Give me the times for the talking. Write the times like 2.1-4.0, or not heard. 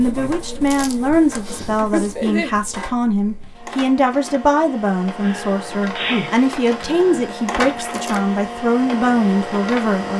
0.0-10.1.